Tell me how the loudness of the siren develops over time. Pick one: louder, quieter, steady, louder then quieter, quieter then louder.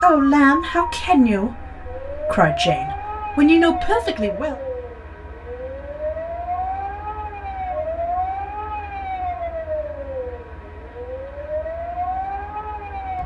steady.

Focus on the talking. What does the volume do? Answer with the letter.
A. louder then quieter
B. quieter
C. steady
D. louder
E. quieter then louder
E.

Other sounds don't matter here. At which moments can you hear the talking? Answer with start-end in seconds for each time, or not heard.
0.0-4.5.